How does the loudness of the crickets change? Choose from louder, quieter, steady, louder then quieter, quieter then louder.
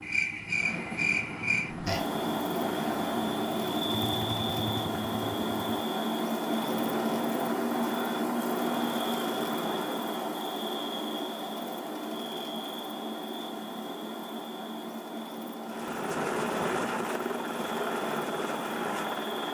quieter.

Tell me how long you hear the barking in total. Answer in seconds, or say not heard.
not heard.